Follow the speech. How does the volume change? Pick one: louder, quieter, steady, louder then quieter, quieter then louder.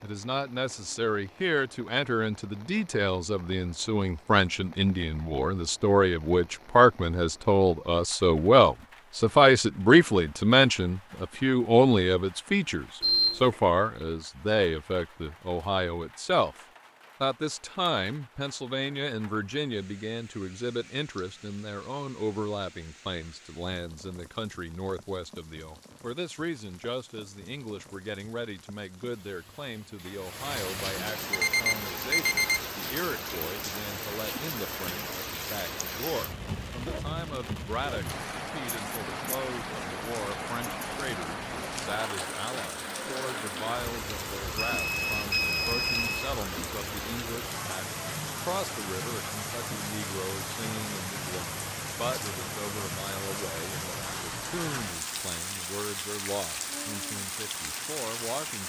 quieter.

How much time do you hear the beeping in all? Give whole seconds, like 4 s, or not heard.
4 s.